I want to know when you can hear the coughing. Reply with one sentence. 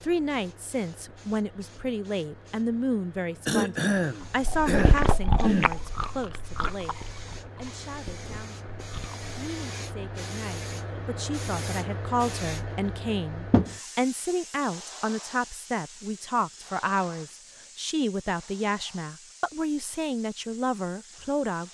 You can hear the coughing from 3.5 to 5.7 s.